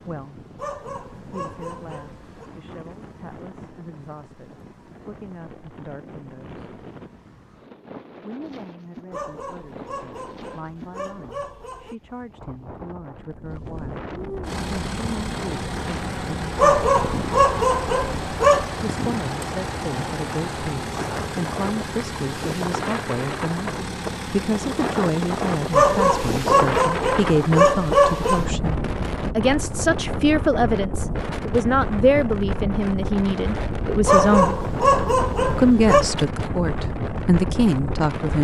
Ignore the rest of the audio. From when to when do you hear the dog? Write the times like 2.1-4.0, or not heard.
0.6-2.5, 9.1-11.9, 16.6-18.8, 25.7-28.4, 34.0-36.0.